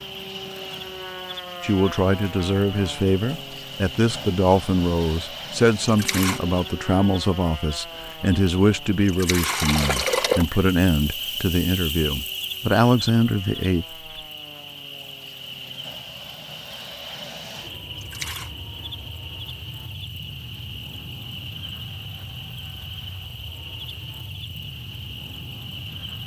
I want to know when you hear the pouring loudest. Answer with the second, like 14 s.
10 s.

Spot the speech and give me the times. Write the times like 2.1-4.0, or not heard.
1.6-13.8.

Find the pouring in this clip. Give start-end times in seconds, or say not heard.
5.8-6.4, 9.1-10.6, 18.0-18.5.